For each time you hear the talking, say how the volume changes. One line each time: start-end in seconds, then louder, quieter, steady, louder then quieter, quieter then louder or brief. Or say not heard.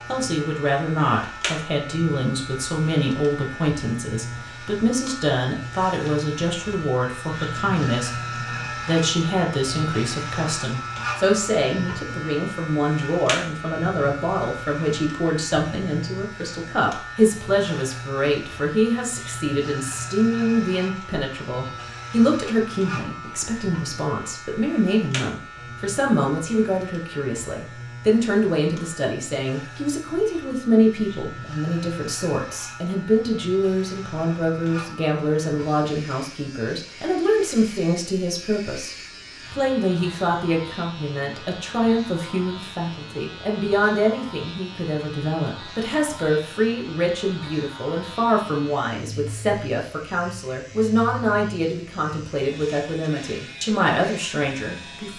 0.1-55.1 steady.